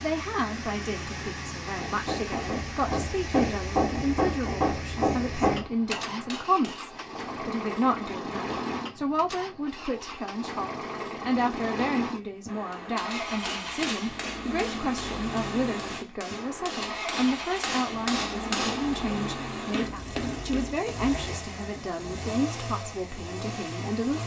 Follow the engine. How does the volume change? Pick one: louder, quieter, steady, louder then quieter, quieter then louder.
steady.